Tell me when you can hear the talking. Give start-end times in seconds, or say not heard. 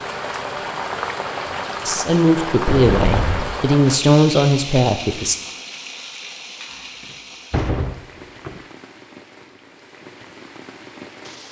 1.9-5.3.